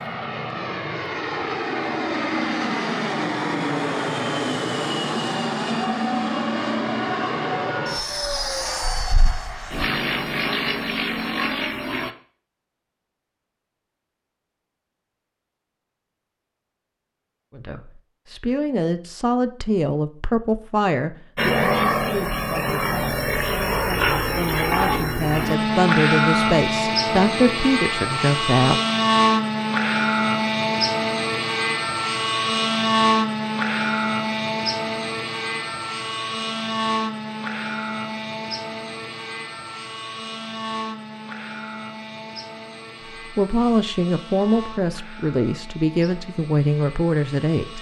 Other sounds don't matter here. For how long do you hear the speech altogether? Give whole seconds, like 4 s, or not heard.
16 s.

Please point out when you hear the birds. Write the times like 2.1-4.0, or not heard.
not heard.